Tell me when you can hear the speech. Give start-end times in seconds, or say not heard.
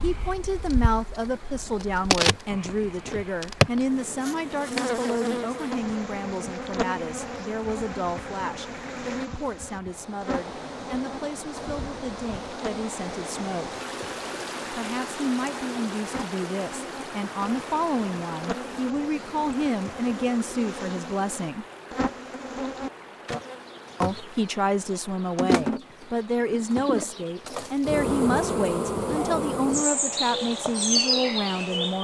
0.0-13.7, 14.7-21.6, 24.0-31.9.